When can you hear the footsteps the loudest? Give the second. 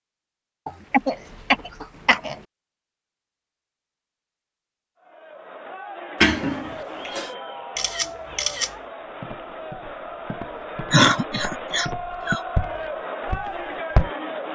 14 s.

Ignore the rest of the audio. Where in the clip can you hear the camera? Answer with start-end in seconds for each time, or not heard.
7.8-8.8.